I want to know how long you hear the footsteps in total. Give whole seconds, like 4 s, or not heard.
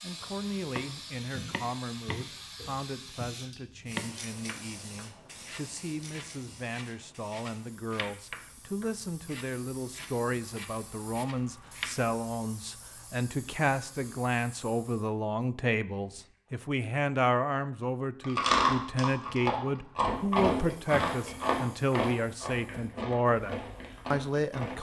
not heard.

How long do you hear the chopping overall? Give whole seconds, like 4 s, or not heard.
12 s.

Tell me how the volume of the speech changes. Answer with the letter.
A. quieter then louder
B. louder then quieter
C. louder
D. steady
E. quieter
C.